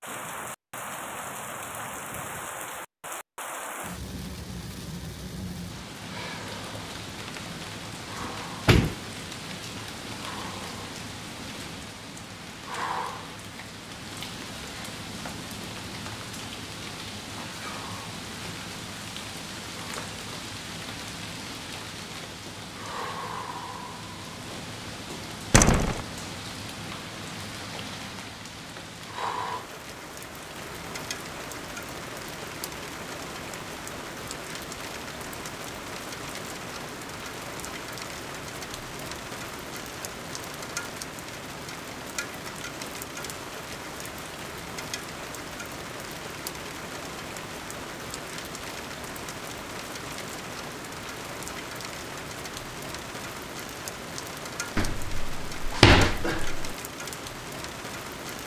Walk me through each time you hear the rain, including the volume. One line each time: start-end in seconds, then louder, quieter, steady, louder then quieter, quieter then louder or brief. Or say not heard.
0.0-58.4 steady.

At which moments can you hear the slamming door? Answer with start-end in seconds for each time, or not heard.
8.2-8.9, 25.5-26.1, 54.8-56.8.